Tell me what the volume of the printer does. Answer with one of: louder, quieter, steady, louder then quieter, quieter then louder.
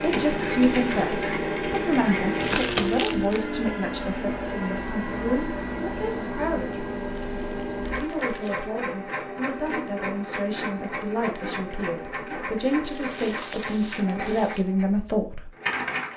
quieter.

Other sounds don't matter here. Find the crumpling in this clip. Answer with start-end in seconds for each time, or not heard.
2.4-3.5, 7.2-8.7, 12.8-14.7.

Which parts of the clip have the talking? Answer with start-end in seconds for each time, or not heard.
0.0-6.8, 8.0-15.5.